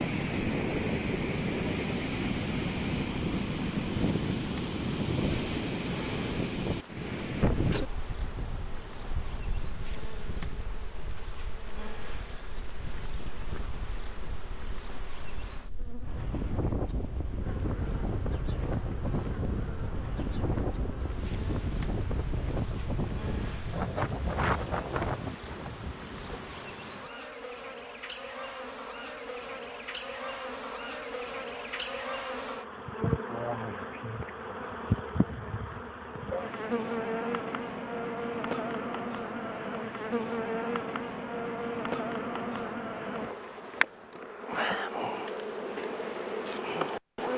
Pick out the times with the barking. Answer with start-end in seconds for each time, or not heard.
not heard.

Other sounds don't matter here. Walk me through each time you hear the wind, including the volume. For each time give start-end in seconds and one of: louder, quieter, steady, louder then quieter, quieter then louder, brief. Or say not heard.
0.0-26.8 quieter then louder.